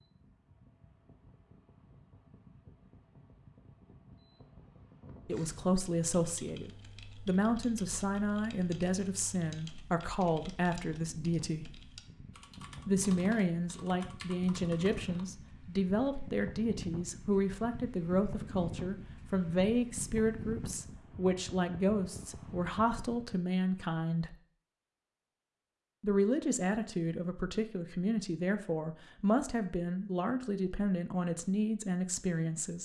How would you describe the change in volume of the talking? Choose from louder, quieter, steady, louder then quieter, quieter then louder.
steady.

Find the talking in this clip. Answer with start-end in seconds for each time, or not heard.
5.2-11.7, 12.8-24.4, 26.0-32.7.